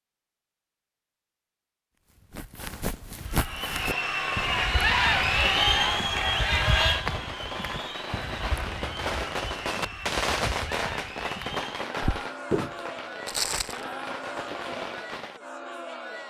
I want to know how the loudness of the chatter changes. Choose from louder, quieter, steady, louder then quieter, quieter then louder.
quieter.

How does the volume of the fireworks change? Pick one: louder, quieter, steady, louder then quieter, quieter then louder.
louder then quieter.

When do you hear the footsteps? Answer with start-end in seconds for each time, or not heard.
2.1-13.8.